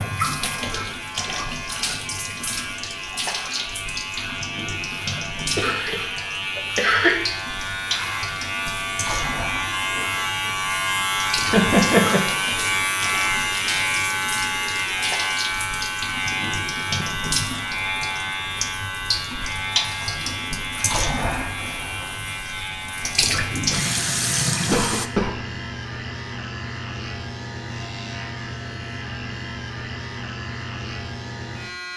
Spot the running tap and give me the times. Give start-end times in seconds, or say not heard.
0.0-25.1.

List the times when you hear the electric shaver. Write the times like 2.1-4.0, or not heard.
0.0-31.9.